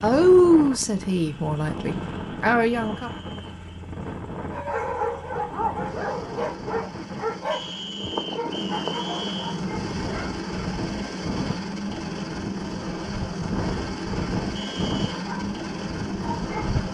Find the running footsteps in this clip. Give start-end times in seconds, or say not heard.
not heard.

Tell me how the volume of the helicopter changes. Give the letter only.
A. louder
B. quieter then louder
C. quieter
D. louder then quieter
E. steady
A.